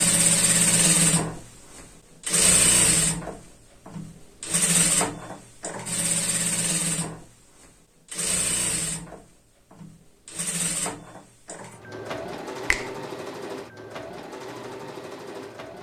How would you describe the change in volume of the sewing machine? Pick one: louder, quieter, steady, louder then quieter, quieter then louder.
quieter.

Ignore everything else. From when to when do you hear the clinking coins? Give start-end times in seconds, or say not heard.
not heard.